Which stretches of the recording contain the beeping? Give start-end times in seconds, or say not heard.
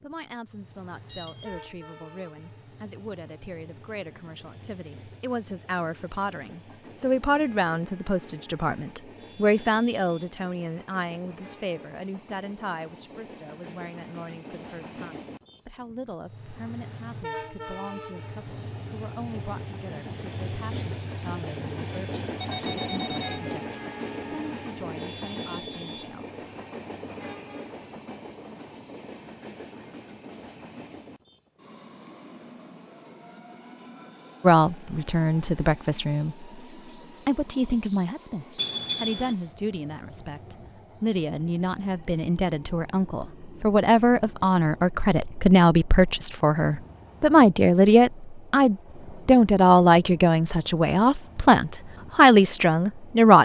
1.1-1.6, 22.4-23.4, 38.5-39.4.